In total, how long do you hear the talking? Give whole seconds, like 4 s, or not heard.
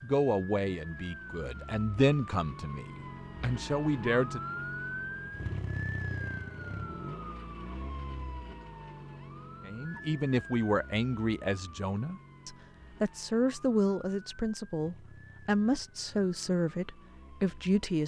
13 s.